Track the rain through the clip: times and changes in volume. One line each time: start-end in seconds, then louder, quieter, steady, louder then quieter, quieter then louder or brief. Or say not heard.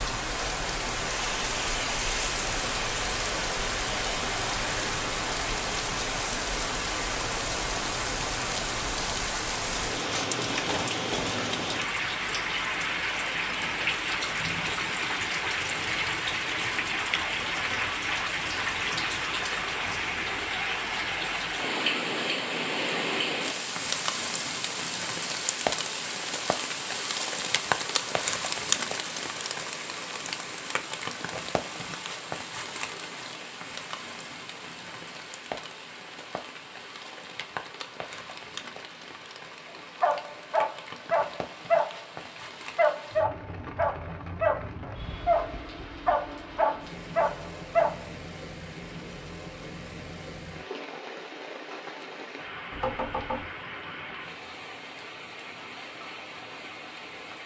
0.0-57.4 quieter.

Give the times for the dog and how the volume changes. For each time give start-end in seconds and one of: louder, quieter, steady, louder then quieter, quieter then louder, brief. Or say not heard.
40.0-48.0 steady.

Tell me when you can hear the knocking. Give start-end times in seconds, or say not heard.
52.7-53.5.